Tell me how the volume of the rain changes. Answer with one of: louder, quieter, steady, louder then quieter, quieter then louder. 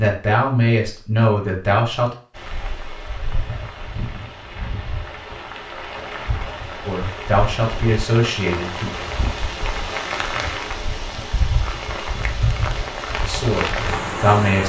louder.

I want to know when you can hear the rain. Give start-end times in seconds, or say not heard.
2.4-14.6.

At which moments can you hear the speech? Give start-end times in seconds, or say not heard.
0.0-2.1, 6.8-8.9, 13.2-14.6.